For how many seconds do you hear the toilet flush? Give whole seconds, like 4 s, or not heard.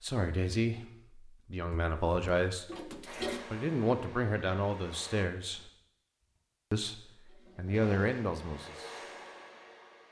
3 s.